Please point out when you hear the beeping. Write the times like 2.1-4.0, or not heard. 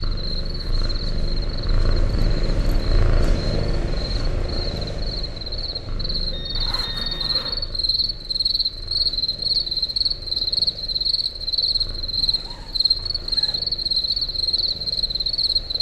6.3-7.7.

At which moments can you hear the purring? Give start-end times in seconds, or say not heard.
0.0-15.7.